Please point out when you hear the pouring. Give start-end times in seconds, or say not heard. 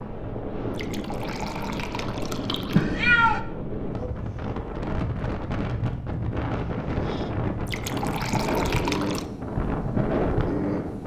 0.7-2.9, 7.7-9.2.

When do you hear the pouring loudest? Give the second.
9 s.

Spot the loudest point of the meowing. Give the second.
3 s.